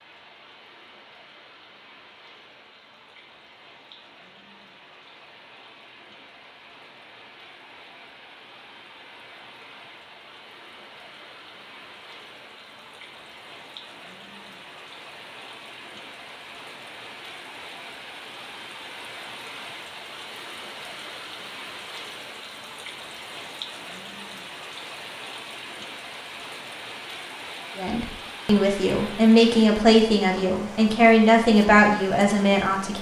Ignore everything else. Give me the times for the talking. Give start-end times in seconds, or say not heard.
27.8-32.9.